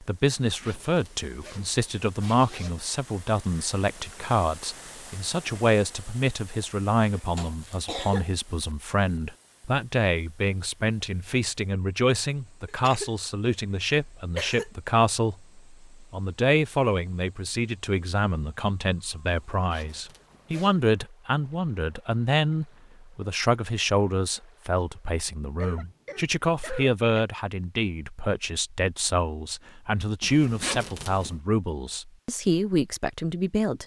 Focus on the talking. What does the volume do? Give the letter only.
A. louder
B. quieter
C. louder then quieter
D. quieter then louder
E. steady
E.